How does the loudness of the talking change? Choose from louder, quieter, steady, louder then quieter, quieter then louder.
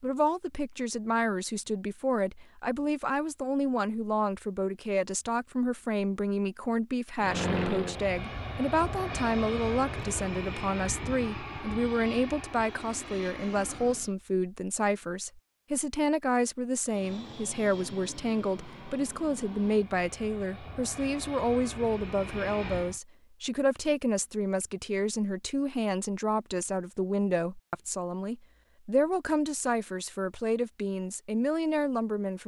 steady.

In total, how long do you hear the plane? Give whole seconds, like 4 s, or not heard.
13 s.